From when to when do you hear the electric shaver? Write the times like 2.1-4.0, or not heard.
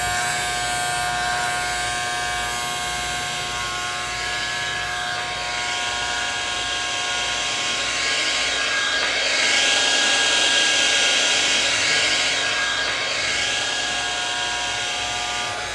0.0-15.7.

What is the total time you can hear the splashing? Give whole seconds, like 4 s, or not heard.
not heard.